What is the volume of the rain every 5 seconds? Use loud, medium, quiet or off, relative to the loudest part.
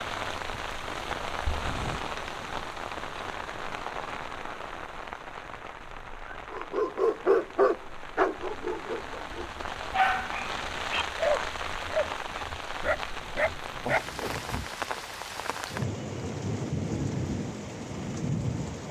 loud, medium, loud, loud.